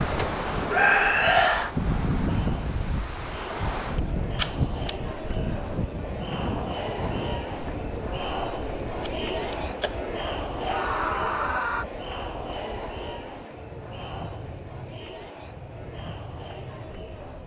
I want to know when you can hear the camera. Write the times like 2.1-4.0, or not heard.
4.3-5.0, 9.0-10.0.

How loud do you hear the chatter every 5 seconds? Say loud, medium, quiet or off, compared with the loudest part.
medium, loud, loud, medium.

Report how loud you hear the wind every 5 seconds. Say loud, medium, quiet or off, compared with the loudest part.
loud, medium, quiet, quiet.